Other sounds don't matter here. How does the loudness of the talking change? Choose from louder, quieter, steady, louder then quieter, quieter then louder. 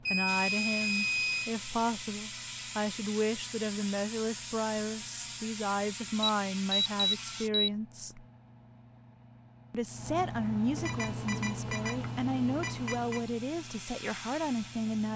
steady.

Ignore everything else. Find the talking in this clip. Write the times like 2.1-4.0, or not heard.
0.1-8.2, 9.7-15.1.